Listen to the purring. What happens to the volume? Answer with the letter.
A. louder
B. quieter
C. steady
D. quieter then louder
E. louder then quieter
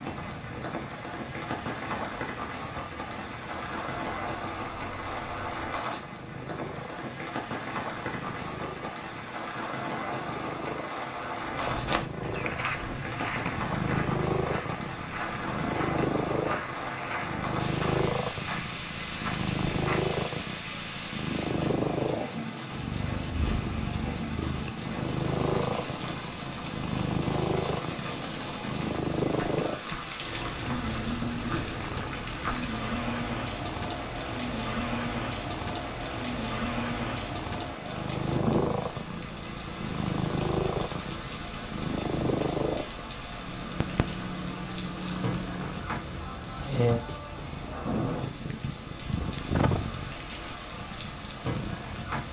A.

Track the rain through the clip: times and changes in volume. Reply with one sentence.
The rain can be heard from 0.0 to 52.2 s, at a steady volume.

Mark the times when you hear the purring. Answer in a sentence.
The purring can be heard from 0.0 to 52.2 s.